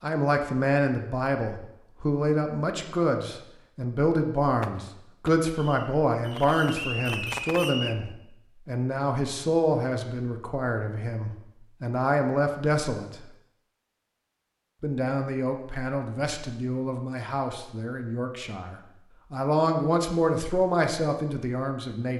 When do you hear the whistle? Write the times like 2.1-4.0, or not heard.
6.7-8.0.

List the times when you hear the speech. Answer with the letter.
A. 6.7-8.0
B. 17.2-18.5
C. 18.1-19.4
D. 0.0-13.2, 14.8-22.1
D.